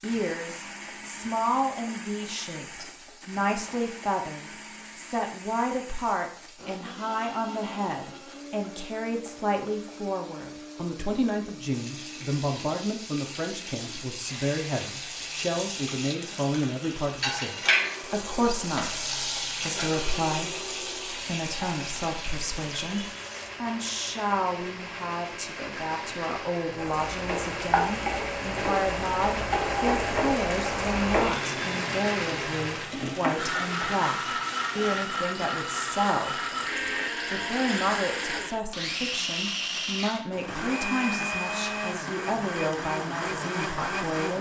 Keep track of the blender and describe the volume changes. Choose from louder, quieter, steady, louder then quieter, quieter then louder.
louder.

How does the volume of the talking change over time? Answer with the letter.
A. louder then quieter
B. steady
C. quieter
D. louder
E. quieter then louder
B.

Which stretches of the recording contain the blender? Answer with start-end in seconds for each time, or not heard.
0.0-44.3.